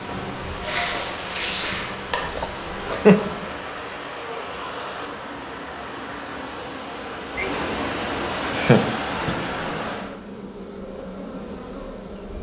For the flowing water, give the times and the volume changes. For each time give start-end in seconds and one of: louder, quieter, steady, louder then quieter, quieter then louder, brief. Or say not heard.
0.0-10.2 louder.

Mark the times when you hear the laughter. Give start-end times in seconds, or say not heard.
2.4-3.2, 7.3-9.5.